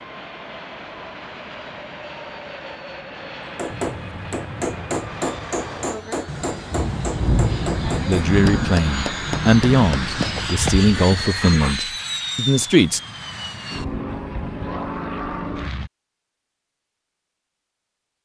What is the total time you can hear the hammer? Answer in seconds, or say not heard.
7 s.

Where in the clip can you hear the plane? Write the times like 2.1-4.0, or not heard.
0.0-15.9.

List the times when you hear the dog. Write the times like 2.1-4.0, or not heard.
10.2-11.8.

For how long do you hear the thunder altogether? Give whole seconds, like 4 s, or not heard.
4 s.